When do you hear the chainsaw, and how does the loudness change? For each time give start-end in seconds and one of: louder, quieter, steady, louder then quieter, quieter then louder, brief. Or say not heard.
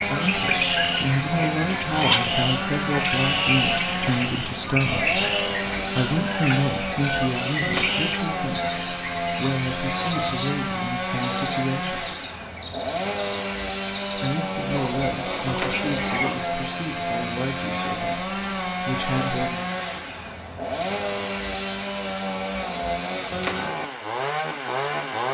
0.0-25.2 steady.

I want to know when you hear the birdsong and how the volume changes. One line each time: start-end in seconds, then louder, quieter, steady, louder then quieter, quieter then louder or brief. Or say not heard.
0.0-16.4 quieter.